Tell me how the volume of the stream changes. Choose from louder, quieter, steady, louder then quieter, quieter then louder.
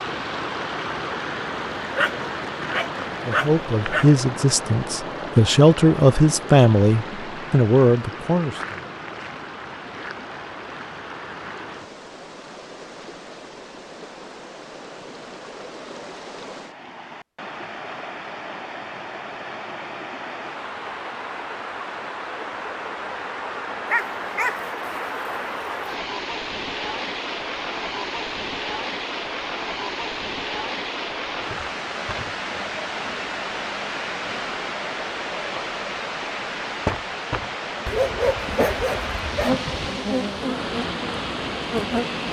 quieter then louder.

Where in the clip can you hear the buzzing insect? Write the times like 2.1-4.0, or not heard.
38.5-42.2.